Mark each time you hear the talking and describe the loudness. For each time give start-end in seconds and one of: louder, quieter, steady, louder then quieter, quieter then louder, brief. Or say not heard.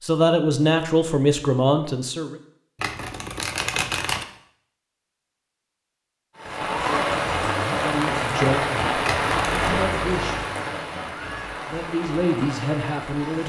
0.0-2.4 brief
7.8-13.4 quieter then louder.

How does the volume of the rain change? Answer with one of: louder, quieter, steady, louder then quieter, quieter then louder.
quieter.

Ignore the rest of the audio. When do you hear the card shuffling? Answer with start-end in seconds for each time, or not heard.
2.8-4.2, 9.0-9.7.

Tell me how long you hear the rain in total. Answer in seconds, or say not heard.
7 s.